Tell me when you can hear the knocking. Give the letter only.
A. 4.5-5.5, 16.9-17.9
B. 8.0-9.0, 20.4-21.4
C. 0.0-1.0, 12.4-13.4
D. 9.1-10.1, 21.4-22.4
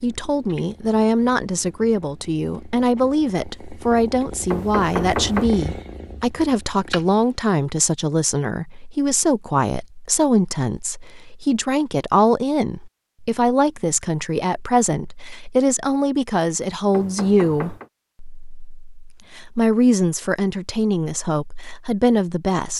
A.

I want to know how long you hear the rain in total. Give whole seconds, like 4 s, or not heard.
not heard.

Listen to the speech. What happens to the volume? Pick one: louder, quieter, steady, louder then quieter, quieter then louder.
steady.